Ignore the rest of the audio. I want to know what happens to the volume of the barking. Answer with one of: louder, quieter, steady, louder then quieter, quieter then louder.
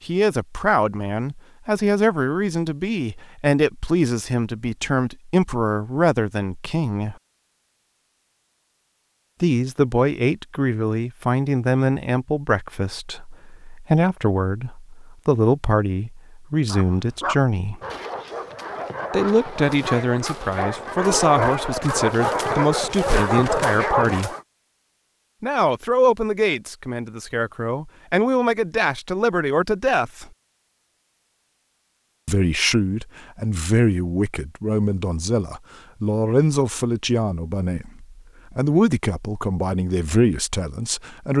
louder.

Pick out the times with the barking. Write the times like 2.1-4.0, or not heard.
16.6-24.4.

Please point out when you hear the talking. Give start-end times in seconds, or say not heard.
0.1-7.2, 9.4-17.8, 19.1-24.3, 25.4-30.2, 32.2-41.3.